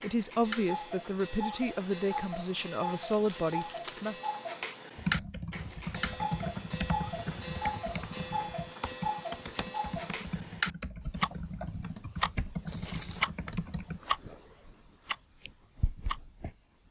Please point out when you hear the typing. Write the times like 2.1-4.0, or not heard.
5.0-14.0.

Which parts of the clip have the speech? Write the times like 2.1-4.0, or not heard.
0.0-4.2.